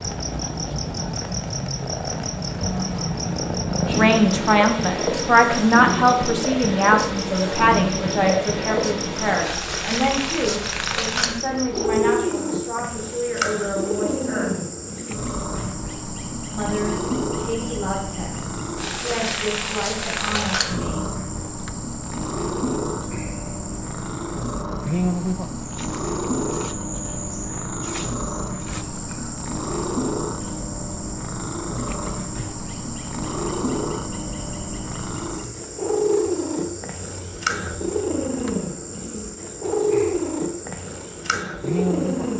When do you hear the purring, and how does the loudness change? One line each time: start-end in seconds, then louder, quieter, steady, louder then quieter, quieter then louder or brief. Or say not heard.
0.0-42.3 steady.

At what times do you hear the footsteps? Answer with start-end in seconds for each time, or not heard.
not heard.